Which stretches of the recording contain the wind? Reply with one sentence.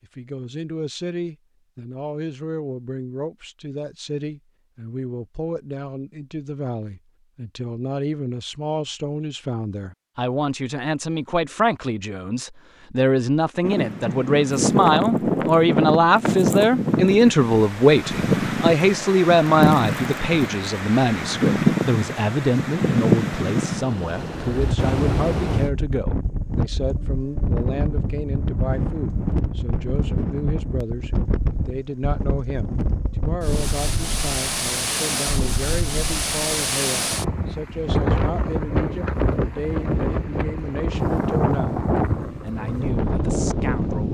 You can hear the wind from 13.6 to 44.0 s.